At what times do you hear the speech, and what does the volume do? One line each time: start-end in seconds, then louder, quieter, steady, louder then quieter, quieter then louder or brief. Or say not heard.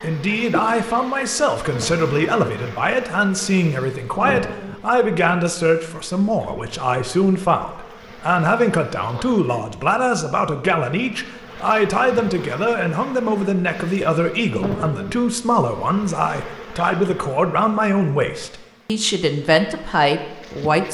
0.0-20.9 steady.